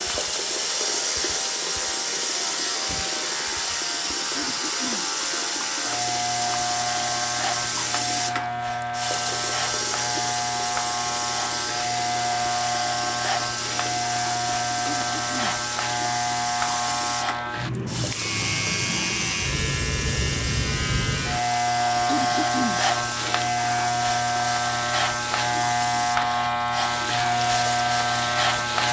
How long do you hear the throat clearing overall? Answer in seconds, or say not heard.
2 s.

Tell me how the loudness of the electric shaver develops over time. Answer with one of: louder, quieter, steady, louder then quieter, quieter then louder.
louder.